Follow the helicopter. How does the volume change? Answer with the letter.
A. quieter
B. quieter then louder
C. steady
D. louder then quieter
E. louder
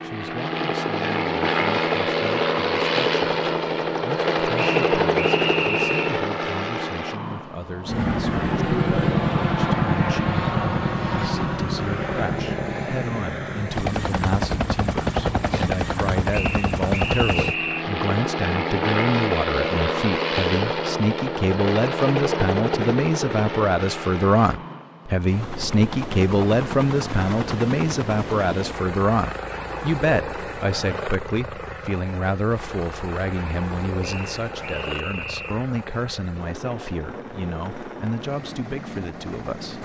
A.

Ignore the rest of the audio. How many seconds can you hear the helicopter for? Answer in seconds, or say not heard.
40 s.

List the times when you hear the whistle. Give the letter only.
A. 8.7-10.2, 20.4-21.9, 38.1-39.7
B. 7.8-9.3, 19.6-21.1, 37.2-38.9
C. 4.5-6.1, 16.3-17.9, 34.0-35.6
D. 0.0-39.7
C.